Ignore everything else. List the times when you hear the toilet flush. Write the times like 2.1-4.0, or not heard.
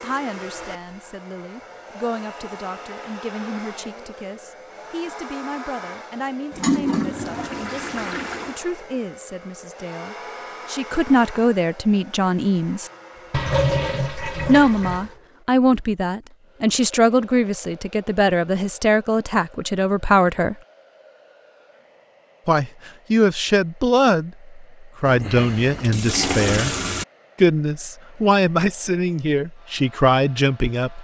6.5-8.6, 13.3-15.1, 25.1-27.1.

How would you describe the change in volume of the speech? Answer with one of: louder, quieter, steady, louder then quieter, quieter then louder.
louder.